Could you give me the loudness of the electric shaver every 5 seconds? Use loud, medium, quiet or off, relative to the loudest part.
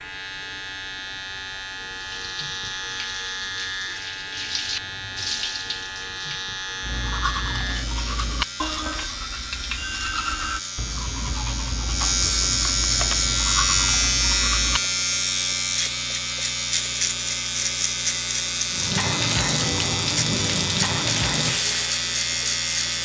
medium, medium, loud, loud, loud.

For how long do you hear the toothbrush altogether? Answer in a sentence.
You can hear the toothbrush for 8 seconds altogether.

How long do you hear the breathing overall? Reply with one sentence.
You can't hear the breathing here.